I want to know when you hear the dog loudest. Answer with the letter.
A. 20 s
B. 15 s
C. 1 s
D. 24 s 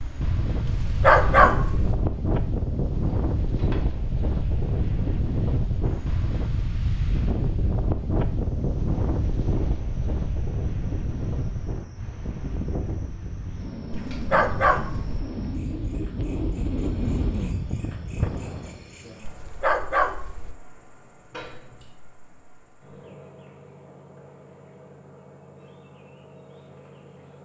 C.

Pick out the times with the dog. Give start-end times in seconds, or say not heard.
0.7-1.9, 14.1-15.2, 19.2-20.6.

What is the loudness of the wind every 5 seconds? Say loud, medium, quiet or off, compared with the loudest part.
loud, loud, medium, loud, off, off.